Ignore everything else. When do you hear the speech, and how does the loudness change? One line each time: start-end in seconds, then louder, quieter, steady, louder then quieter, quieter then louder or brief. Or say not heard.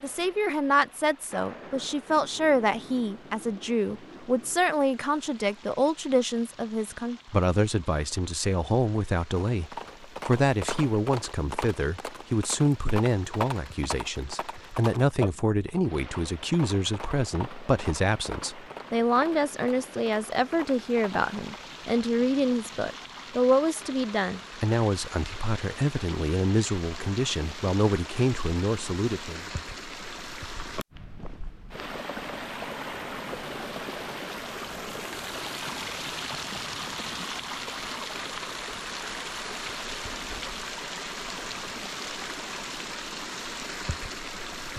0.0-29.4 steady.